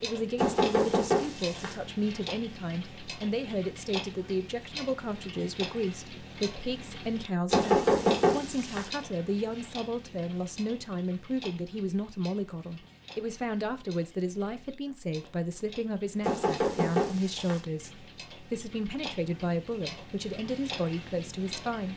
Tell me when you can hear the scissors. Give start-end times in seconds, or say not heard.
not heard.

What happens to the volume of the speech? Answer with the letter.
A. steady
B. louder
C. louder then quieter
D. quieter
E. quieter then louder
A.